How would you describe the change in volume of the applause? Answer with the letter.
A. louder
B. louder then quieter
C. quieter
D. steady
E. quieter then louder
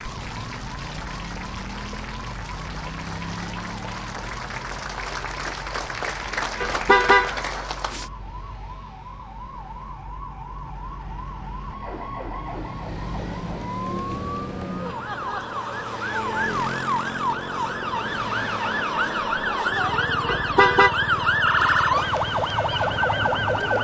A.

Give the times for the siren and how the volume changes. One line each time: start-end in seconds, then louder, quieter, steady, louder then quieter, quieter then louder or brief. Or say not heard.
0.0-23.7 louder.